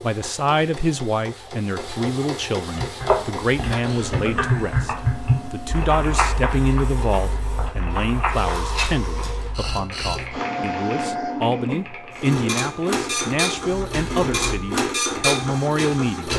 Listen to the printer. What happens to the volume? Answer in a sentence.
The loudness of the printer goes up.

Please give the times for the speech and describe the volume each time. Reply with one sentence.
The speech can be heard from 0.0 to 16.3 s, at a steady volume.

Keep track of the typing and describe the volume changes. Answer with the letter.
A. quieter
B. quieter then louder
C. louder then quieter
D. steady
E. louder
A.